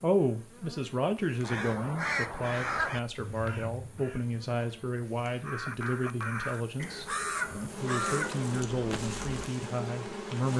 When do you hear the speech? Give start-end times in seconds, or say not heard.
0.0-10.5.